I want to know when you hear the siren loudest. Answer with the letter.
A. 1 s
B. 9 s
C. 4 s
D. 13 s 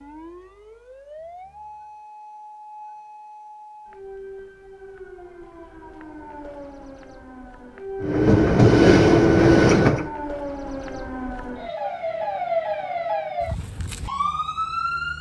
D.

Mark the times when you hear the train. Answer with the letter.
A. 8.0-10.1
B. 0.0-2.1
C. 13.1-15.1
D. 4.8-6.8
A.